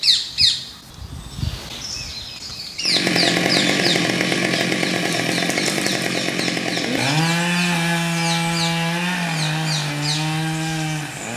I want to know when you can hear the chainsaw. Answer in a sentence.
You can hear the chainsaw from 2.8 to 11.3 s.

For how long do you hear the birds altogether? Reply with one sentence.
You can hear the birds for 11 seconds altogether.